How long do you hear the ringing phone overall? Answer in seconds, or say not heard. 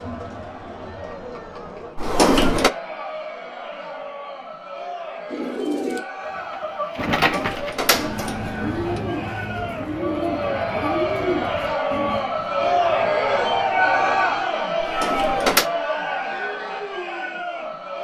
2 s.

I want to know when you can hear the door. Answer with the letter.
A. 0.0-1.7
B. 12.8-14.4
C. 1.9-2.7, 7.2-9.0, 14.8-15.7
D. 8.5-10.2
C.